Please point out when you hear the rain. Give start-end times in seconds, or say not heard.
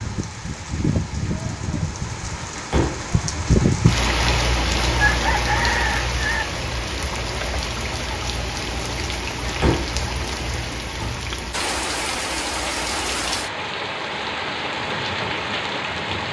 0.0-16.2.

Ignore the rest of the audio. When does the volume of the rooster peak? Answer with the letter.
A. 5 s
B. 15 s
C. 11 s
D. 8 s
A.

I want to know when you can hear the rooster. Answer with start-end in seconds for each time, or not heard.
5.0-6.5.